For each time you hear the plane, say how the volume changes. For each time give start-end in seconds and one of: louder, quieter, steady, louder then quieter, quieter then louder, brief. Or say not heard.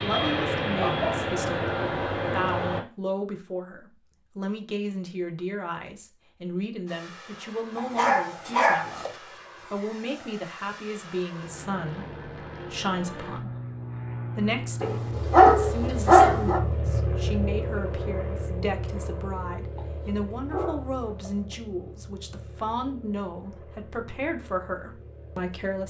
0.0-2.9 brief
6.8-25.8 louder then quieter.